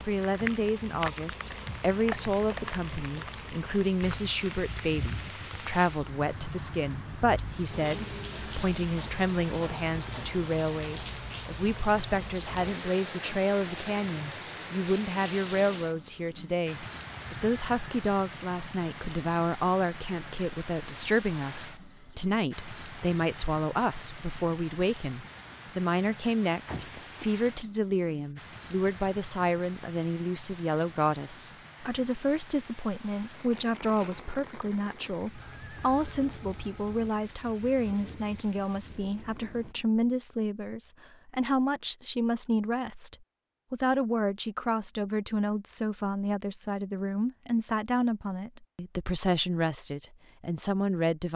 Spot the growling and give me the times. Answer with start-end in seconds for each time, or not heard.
26.6-27.3.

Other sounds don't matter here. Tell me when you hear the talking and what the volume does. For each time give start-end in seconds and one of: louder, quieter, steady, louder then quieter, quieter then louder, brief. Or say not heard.
0.1-51.3 steady.